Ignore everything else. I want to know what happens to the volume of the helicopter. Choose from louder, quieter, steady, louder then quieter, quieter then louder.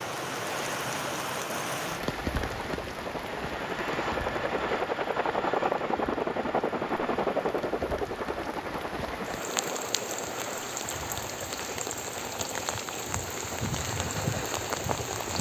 louder then quieter.